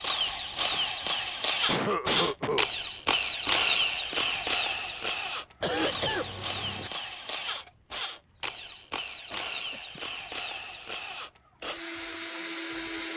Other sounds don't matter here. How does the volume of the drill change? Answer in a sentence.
The volume of the drill goes down.